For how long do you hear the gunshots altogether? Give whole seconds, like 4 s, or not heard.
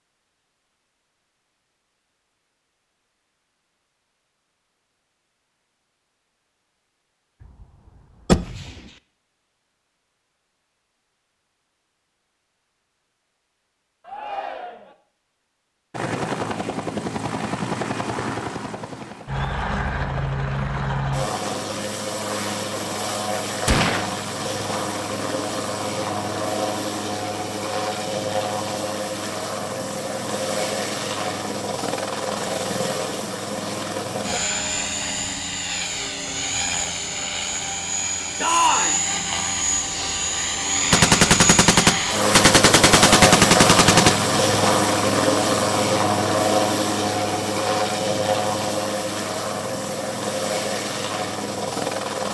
4 s.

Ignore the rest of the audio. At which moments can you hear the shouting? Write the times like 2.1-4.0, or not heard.
14.0-14.9, 38.4-39.0.